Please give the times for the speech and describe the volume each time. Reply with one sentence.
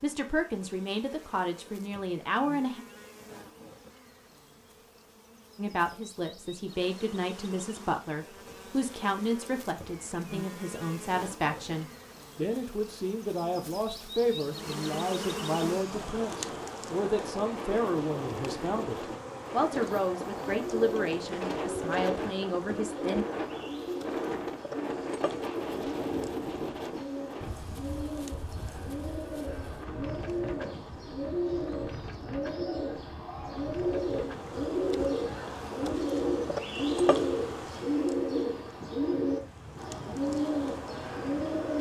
The speech can be heard briefly from 0.0 to 2.9 s; and from 5.5 to 23.2 s, at a steady volume.